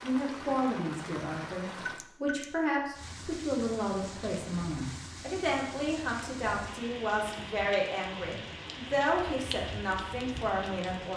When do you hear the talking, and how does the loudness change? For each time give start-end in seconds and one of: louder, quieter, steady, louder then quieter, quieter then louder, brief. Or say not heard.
0.0-11.1 steady.